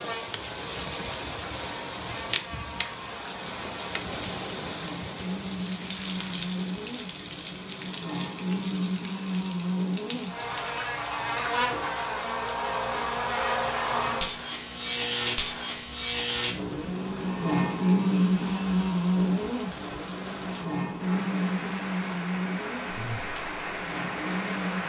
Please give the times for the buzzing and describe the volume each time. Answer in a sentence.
The buzzing can be heard from 0.0 to 24.8 s, getting louder then quieter.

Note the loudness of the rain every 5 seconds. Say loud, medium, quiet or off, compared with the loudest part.
loud, loud, medium, medium, loud.